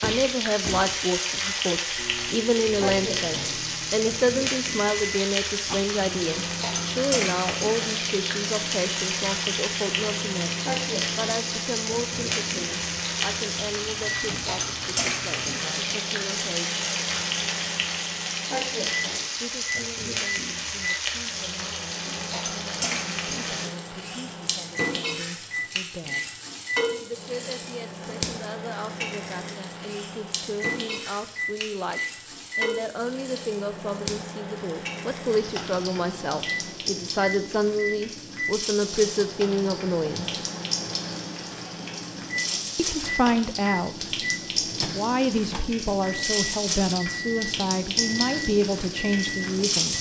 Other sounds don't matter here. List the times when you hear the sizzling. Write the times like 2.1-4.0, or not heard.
0.0-49.9.